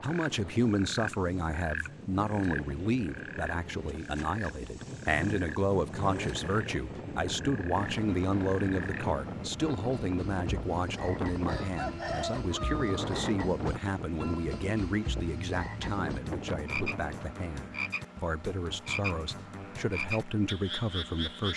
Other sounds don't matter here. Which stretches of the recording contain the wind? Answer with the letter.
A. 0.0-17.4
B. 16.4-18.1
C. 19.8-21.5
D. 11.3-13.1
A.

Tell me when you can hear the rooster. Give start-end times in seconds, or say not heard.
11.3-13.1.